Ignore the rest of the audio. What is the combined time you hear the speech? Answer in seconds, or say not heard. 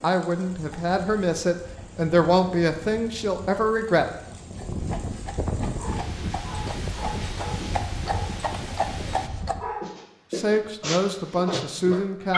6 s.